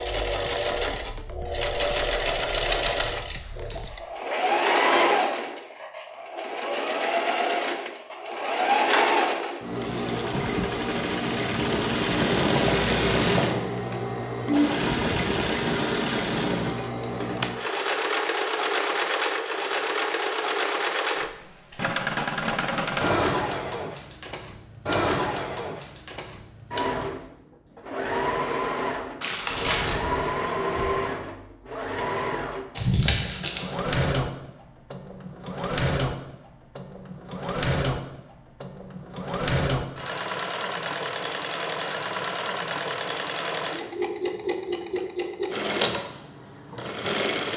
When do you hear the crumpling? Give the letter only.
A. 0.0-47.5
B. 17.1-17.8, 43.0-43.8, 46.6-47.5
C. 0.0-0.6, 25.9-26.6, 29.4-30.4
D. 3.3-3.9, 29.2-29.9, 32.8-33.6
D.